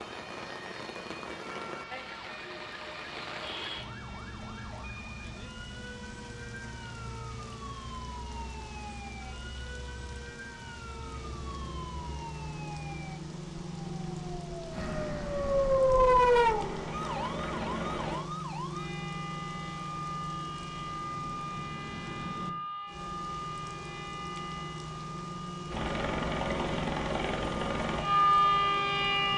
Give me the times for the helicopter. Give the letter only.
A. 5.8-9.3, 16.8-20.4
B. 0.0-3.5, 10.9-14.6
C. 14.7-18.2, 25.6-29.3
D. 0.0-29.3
C.